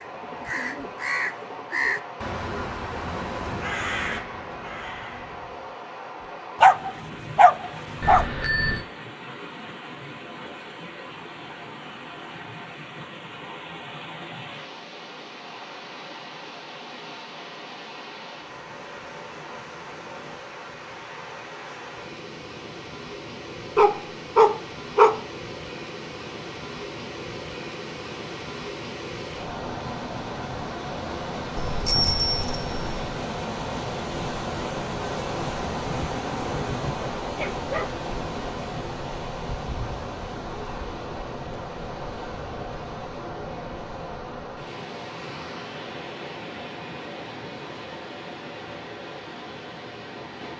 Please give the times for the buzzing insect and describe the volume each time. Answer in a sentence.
You can't hear the buzzing insect here.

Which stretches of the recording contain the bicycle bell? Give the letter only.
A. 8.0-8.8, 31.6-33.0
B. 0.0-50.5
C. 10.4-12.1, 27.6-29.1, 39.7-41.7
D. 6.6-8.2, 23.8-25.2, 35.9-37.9
A.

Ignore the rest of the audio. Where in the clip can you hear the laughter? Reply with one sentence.
You can't hear the laughter here.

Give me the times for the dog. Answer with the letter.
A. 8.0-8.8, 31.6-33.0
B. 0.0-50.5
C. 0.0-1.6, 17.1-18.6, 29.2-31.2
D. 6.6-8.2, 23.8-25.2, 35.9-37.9
D.